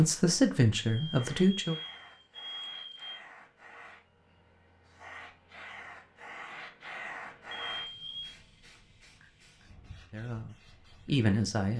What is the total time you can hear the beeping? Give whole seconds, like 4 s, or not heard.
3 s.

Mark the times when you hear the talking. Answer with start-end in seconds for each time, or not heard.
0.0-1.8, 10.1-11.7.